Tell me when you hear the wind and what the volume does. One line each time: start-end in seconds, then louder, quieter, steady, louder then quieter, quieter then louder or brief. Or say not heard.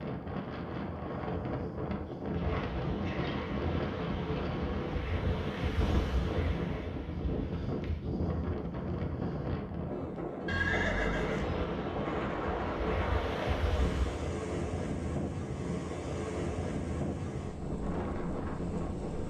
0.0-19.2 steady.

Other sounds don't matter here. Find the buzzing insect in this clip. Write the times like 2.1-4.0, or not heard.
2.2-8.2, 11.2-14.3.